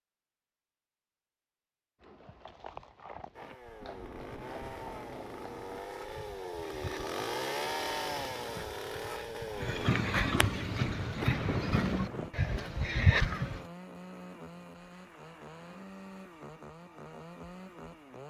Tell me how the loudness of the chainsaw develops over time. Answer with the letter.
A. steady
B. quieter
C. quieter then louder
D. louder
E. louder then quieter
E.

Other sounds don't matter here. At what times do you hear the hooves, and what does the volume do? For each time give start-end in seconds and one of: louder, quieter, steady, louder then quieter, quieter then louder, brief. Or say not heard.
2.0-13.7 louder.